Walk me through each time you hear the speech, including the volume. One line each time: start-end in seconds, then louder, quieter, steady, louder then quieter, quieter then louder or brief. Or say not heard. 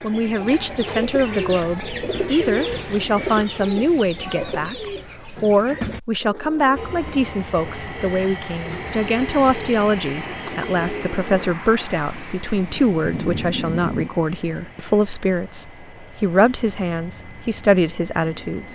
0.0-18.7 steady.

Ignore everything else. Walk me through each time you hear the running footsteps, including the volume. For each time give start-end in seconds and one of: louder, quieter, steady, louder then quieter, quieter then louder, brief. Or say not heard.
not heard.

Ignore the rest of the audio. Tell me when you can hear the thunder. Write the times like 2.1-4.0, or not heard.
12.1-14.1.